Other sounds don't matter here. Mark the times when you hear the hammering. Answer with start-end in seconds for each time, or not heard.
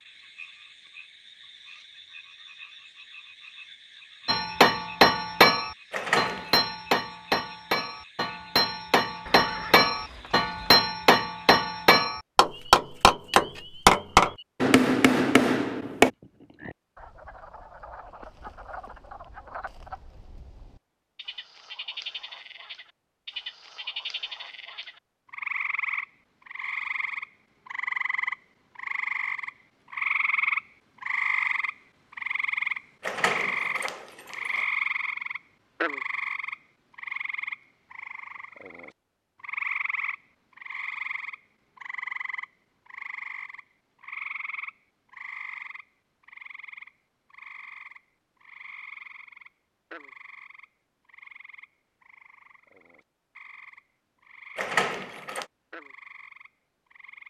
4.2-16.1.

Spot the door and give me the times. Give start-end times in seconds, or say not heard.
5.9-6.5, 33.0-34.6, 54.5-55.5.